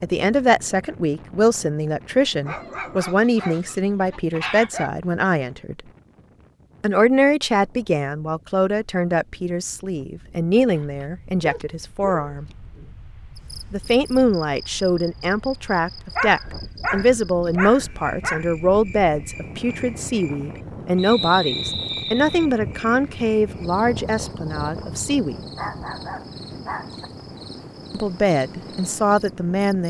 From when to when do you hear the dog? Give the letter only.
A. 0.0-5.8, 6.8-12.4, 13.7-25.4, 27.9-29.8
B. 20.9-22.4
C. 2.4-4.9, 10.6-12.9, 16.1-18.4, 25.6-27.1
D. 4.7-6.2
C.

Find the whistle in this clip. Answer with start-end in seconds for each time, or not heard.
20.9-22.4.